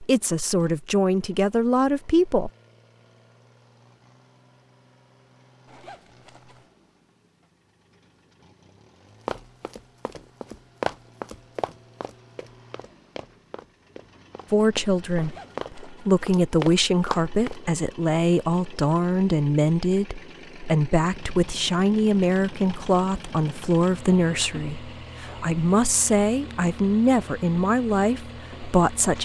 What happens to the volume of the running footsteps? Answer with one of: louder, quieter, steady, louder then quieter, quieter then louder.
quieter then louder.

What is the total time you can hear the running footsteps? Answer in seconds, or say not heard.
8 s.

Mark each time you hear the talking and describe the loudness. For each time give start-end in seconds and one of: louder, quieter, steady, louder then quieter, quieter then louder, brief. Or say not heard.
0.0-2.5 brief
14.5-29.2 steady.